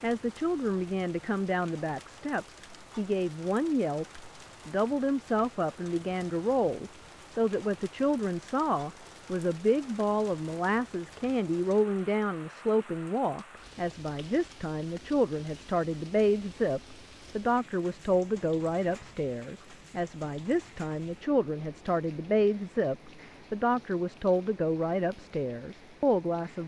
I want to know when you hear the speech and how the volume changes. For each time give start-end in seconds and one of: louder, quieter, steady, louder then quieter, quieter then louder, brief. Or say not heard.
0.0-26.6 steady.